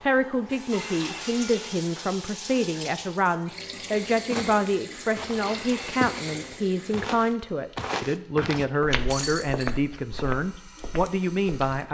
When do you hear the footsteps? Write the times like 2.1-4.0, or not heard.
4.2-11.7.